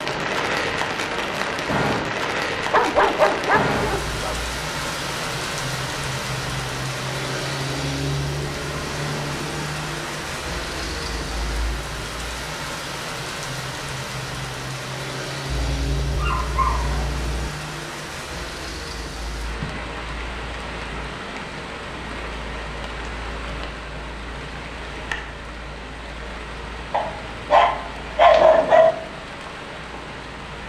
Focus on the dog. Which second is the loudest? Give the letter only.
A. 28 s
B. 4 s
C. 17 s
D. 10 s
A.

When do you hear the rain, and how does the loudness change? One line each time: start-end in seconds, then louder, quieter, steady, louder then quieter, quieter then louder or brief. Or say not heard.
0.0-30.6 quieter.